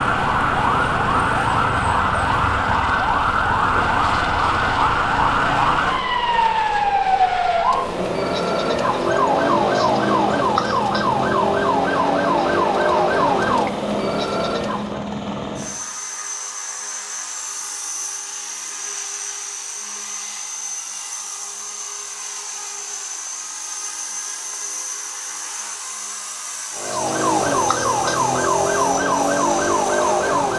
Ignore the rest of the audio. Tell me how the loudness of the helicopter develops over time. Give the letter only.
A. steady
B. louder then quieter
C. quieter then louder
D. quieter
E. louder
A.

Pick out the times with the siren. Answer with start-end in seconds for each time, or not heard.
0.0-15.0, 26.7-30.5.